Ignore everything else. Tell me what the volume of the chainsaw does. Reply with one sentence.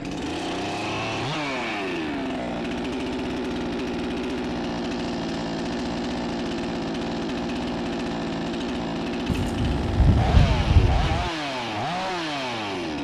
The loudness of the chainsaw stays about the same.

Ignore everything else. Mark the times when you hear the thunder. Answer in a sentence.
You can hear the thunder from 9.2 to 11.3 s.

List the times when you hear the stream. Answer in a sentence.
You can't hear the stream here.